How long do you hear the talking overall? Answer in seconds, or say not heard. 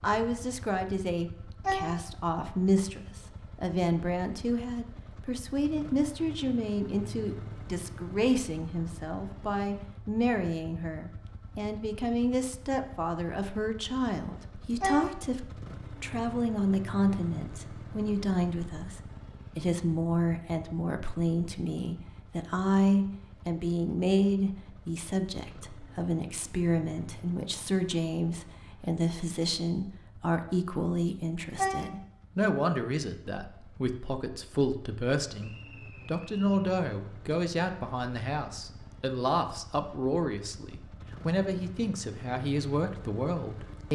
44 s.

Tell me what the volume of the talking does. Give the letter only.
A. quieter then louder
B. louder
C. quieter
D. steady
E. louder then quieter
D.